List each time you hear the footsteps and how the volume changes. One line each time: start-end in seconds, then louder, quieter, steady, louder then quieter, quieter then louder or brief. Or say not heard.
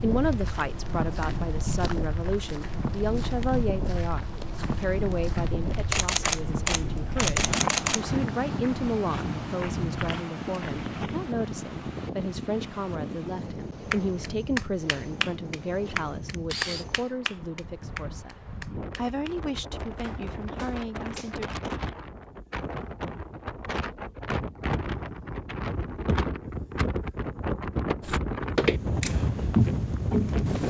0.1-11.3 louder then quieter
28.0-30.6 brief.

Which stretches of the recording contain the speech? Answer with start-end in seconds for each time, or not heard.
0.0-21.5.